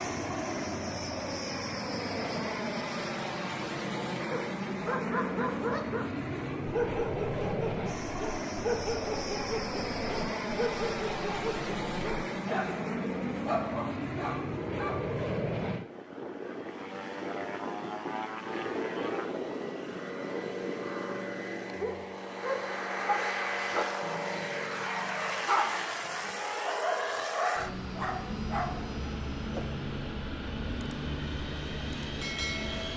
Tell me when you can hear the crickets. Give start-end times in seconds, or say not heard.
not heard.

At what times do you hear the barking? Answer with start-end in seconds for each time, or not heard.
4.3-15.0, 21.8-28.8.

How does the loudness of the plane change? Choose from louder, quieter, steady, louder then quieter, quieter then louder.
steady.